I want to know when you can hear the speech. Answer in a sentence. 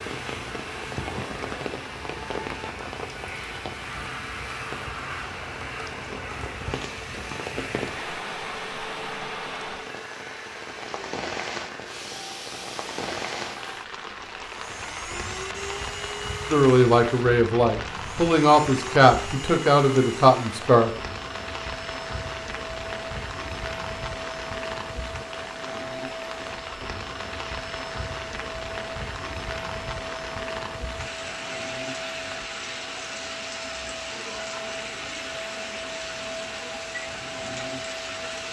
You can hear the speech from 16.5 to 20.9 s.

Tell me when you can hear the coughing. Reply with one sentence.
The coughing can't be heard in this clip.